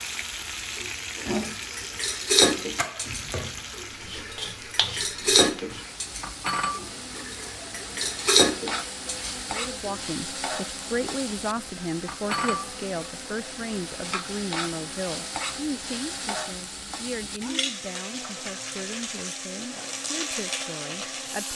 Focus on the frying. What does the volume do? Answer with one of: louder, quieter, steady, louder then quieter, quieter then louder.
steady.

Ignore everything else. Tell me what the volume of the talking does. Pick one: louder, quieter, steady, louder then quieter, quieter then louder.
quieter.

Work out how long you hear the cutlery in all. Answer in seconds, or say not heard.
9 s.